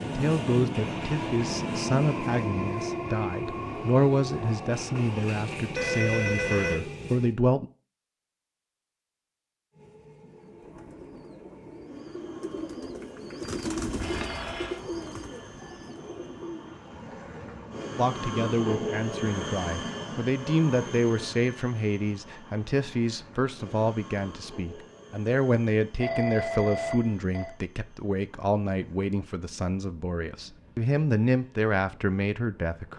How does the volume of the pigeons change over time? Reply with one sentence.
The loudness of the pigeons goes up, then down.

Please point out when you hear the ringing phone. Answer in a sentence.
You can hear the ringing phone from 5.8 to 6.8 s, from 14.0 to 14.8 s and from 26.0 to 27.6 s.